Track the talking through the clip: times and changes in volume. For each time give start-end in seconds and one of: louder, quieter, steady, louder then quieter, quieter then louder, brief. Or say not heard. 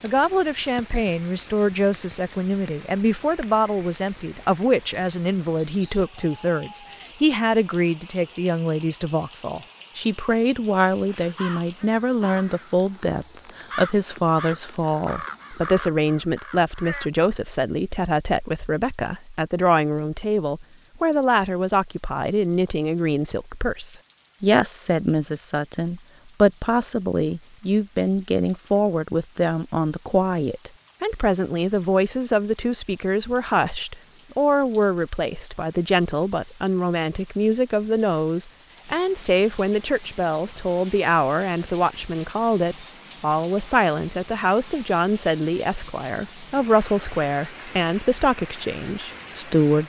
0.0-49.8 steady.